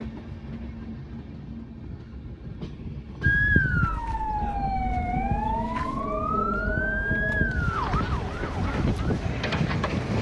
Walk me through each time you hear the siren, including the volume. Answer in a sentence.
You can hear the siren from 3.2 to 10.1 s, at a steady volume.